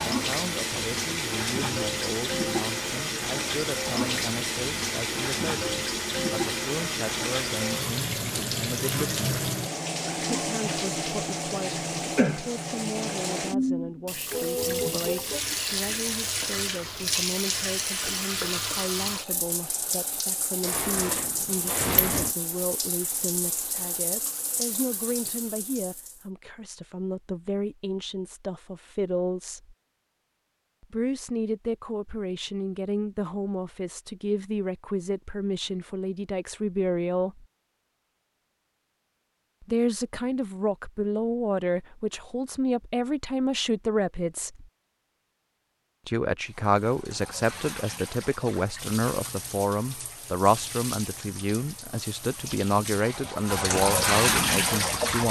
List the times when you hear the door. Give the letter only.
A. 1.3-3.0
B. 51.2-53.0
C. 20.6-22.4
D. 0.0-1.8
C.